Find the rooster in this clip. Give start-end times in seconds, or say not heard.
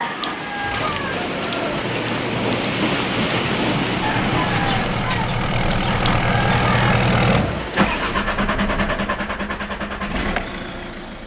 4.0-7.0.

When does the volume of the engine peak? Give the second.
7 s.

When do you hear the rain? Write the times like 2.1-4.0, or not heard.
0.0-8.3.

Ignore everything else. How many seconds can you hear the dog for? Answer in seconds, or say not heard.
not heard.